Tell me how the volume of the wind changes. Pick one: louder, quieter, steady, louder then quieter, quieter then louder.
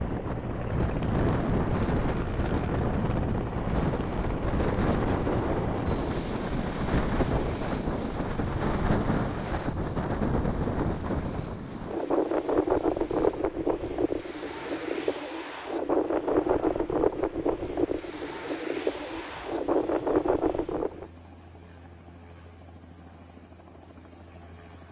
steady.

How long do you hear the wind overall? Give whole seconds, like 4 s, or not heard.
21 s.